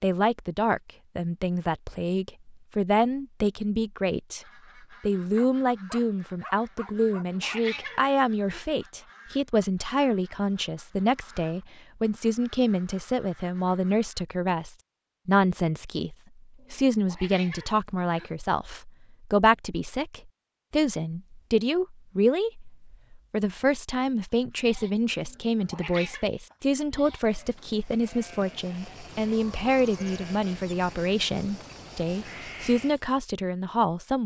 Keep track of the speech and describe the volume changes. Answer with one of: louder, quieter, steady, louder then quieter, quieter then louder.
steady.